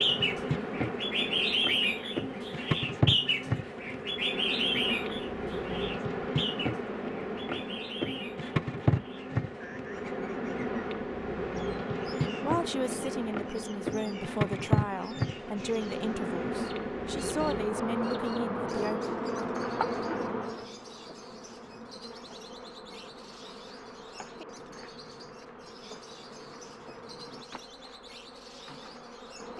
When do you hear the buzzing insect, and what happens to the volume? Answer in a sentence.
You can hear the buzzing insect from 0.0 to 29.5 s, getting quieter.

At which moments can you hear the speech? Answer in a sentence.
You can hear the speech from 12.4 to 19.0 s.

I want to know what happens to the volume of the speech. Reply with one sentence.
The volume of the speech stays about the same.